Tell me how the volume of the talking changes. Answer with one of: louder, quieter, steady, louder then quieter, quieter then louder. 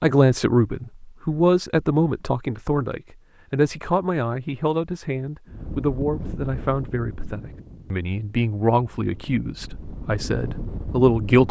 quieter.